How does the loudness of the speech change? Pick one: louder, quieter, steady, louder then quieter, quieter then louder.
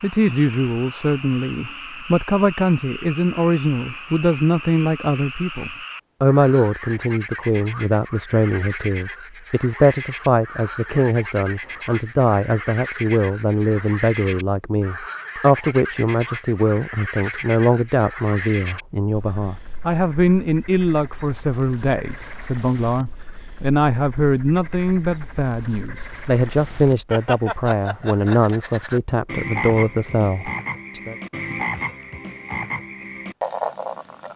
steady.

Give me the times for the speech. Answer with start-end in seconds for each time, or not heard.
0.0-31.1.